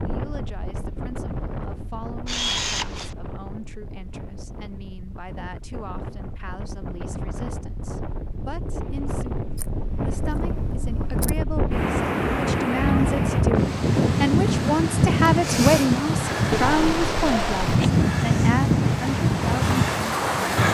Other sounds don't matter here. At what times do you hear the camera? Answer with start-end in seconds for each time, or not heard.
2.2-3.1, 9.6-11.3, 16.5-17.9.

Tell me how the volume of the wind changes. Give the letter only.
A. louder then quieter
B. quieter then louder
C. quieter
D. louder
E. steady
D.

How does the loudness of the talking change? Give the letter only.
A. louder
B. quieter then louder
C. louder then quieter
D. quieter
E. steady
A.